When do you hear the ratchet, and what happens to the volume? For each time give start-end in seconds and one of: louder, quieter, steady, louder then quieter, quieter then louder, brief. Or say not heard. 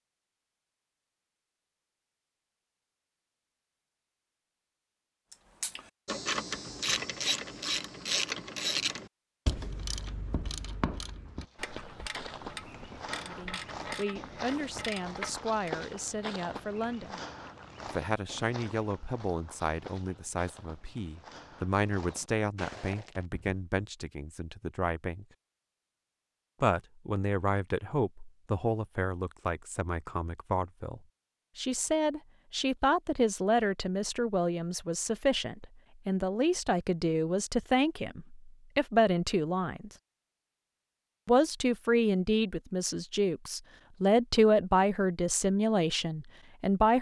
5.3-15.8 quieter.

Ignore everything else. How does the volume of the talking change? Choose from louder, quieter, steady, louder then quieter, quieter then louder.
louder.